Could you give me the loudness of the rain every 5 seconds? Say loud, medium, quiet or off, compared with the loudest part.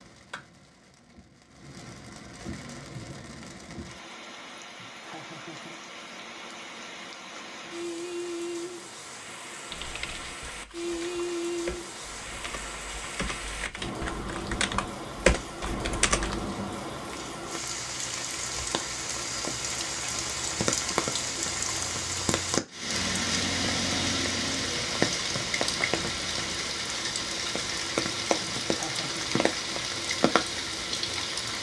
quiet, medium, medium, medium, loud, loud, loud.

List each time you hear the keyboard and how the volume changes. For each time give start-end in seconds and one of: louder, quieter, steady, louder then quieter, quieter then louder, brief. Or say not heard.
9.7-16.5 louder.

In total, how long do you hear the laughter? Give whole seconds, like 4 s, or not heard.
2 s.